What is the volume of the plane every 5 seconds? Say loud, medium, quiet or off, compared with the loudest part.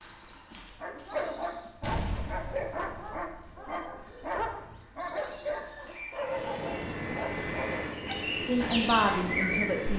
off, loud.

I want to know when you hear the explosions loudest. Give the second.
2 s.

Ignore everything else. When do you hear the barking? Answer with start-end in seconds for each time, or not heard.
0.8-8.2.